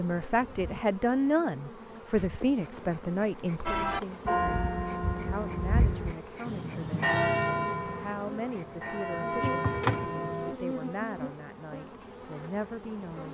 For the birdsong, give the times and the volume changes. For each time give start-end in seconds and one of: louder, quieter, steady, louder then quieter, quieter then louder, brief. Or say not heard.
not heard.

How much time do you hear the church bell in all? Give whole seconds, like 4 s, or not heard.
7 s.